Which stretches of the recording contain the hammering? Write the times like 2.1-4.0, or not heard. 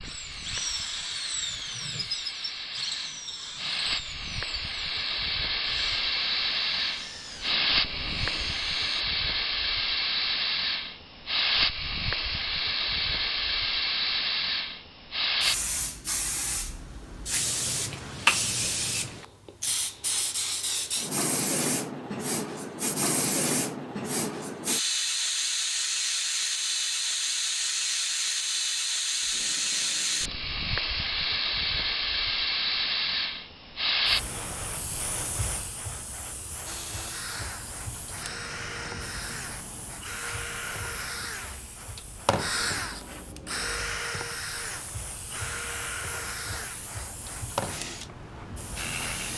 not heard.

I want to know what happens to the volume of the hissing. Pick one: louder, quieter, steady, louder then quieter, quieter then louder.
quieter.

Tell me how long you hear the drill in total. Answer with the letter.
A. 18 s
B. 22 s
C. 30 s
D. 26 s
B.